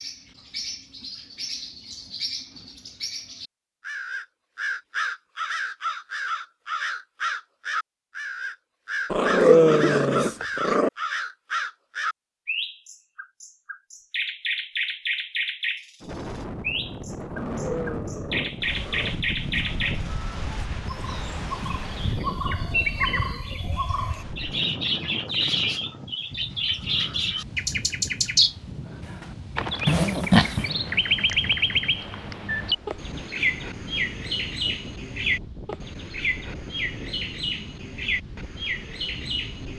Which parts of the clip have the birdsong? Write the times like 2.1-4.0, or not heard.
0.0-39.7.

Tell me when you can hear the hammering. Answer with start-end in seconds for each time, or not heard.
not heard.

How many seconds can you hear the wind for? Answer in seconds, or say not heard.
24 s.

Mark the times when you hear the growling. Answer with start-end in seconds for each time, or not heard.
9.1-10.9, 17.3-19.1, 29.9-30.6.